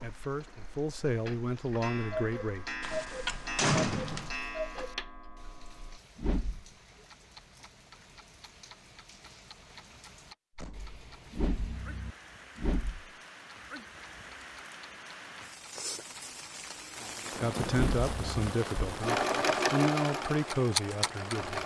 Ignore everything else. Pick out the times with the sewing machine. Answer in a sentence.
You can hear the sewing machine from 19.0 to 21.6 s.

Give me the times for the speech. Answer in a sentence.
You can hear the speech from 0.0 to 2.7 s and from 17.4 to 21.6 s.